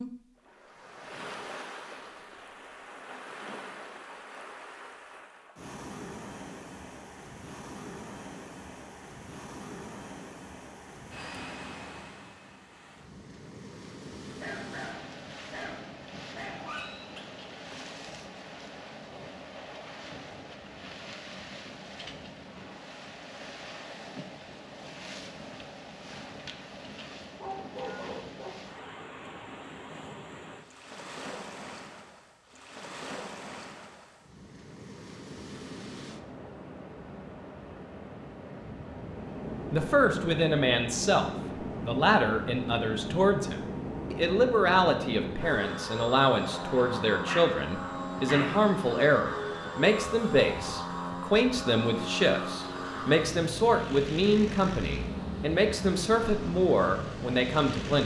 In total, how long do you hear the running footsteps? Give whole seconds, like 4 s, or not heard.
not heard.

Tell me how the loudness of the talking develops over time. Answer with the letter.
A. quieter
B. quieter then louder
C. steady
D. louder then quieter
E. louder
C.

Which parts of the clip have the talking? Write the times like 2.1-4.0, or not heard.
39.7-58.0.